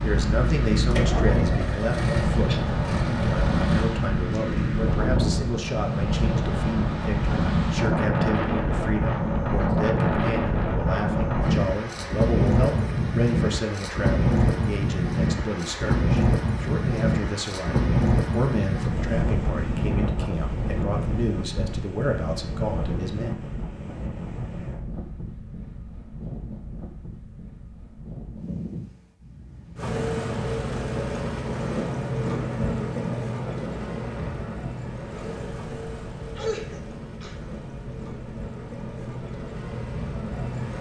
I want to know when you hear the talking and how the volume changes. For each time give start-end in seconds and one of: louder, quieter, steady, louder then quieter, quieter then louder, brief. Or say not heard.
0.0-23.4 steady.